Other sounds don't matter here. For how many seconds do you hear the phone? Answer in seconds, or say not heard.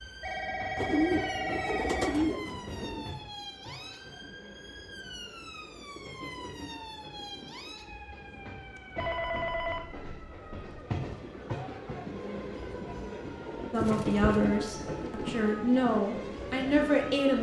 4 s.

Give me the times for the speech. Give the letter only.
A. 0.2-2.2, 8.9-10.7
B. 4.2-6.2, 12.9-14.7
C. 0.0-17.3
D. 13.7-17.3
D.